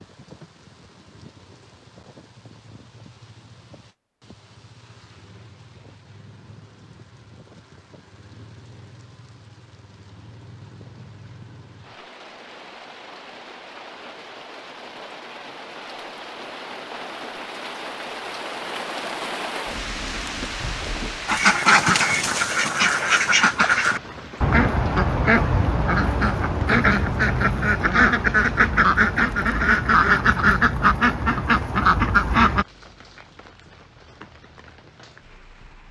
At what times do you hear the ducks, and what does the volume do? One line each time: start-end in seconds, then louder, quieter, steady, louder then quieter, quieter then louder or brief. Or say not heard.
21.2-32.6 steady.